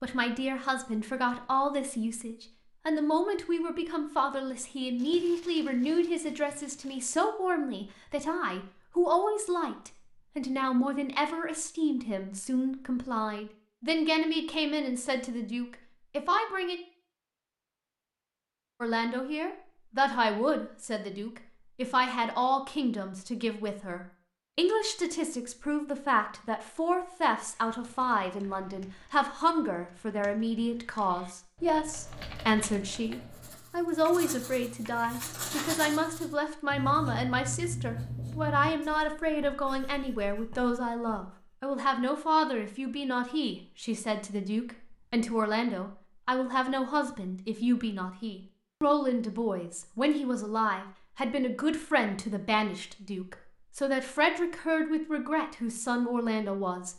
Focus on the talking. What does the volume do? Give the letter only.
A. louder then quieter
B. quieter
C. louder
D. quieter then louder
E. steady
E.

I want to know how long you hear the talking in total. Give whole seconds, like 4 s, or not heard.
55 s.